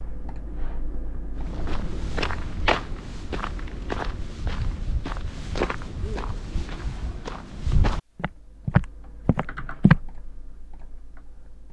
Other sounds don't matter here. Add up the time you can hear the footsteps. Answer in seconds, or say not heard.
9 s.